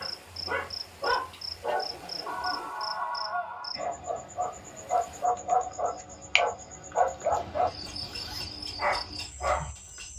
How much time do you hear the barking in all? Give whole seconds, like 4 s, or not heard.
10 s.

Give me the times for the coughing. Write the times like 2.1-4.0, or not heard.
not heard.